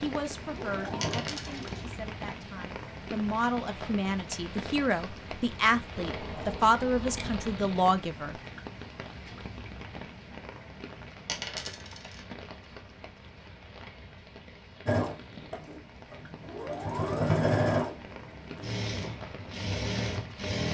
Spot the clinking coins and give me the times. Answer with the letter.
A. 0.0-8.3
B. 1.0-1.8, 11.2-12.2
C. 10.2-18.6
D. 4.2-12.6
B.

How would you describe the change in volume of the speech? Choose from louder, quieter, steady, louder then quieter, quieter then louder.
louder.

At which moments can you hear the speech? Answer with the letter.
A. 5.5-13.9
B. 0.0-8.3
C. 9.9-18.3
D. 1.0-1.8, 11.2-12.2
B.